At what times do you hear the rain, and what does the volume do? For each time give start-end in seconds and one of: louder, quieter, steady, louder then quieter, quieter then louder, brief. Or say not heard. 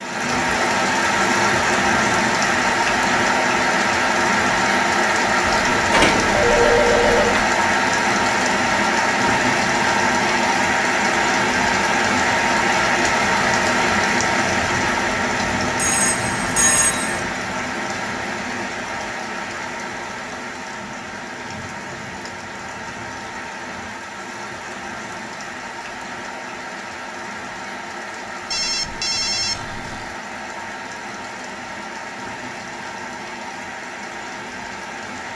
0.0-35.3 quieter.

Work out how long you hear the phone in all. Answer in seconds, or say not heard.
5 s.